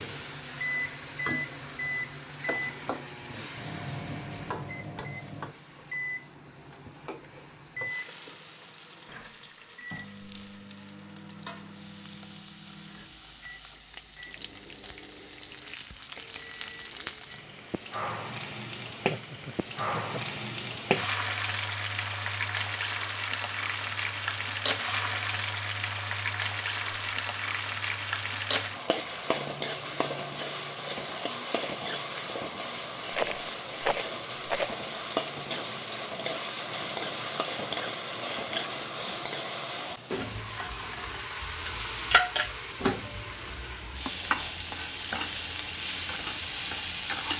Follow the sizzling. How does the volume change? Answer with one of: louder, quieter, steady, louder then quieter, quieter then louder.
louder.